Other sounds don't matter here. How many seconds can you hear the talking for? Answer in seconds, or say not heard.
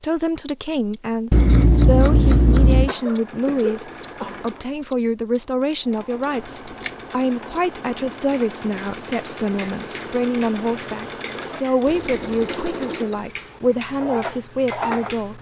15 s.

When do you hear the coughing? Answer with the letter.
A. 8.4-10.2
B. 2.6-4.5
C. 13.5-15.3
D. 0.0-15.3
B.